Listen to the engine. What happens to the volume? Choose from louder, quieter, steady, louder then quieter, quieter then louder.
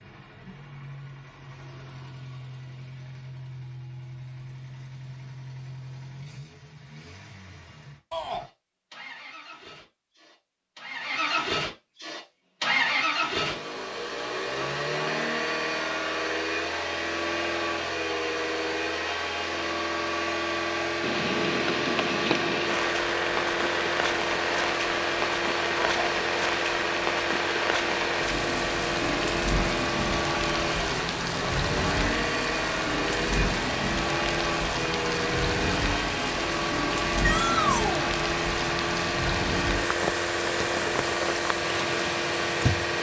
louder.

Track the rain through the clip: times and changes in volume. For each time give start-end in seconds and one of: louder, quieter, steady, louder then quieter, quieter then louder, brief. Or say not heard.
21.0-42.9 steady.